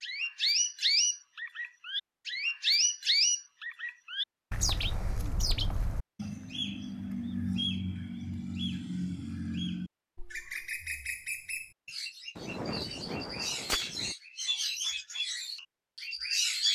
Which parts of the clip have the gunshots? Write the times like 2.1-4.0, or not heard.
12.3-14.2.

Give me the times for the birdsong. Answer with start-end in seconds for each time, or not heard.
0.0-16.6.